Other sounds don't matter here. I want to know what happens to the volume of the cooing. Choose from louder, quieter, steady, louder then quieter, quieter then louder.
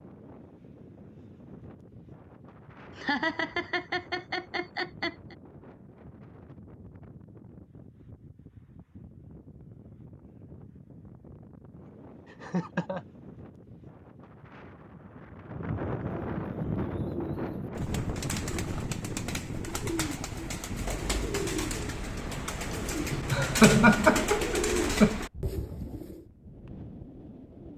louder.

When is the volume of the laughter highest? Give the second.
24 s.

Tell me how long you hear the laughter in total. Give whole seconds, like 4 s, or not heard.
6 s.